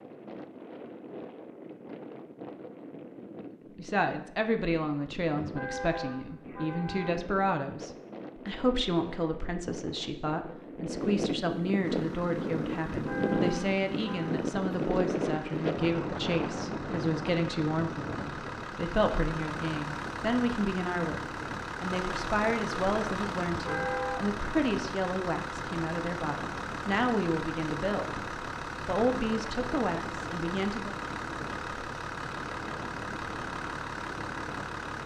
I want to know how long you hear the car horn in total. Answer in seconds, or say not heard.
4 s.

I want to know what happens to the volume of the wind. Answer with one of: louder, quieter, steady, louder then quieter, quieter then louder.
louder then quieter.